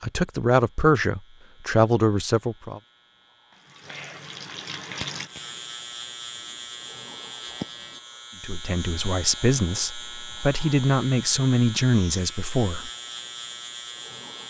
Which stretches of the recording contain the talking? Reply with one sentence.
The talking can be heard from 0.0 to 2.8 s and from 8.4 to 12.9 s.